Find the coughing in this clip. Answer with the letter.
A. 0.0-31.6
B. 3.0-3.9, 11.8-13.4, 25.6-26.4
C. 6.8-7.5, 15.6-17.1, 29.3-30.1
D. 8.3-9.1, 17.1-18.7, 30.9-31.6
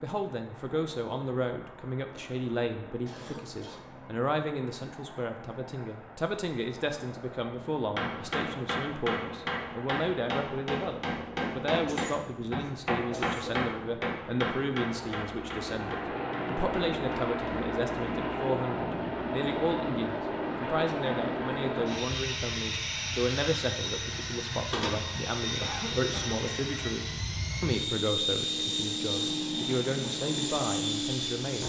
B.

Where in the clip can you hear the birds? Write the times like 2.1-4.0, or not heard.
not heard.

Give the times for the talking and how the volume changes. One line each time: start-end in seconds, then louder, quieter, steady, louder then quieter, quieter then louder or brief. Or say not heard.
0.0-31.6 steady.